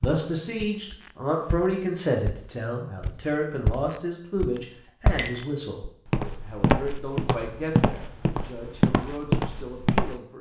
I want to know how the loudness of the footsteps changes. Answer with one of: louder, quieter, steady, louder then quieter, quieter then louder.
louder.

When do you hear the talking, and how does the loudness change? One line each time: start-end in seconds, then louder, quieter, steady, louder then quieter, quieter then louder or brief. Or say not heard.
0.0-10.3 quieter.